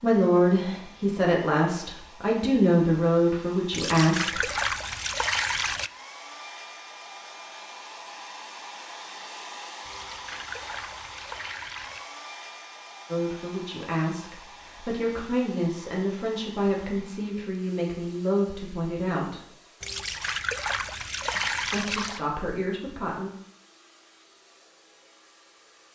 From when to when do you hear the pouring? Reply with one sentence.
The pouring can be heard from 3.7 to 5.9 s, from 9.8 to 12.1 s and from 19.8 to 22.2 s.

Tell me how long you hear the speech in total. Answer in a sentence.
You can hear the speech for 13 seconds altogether.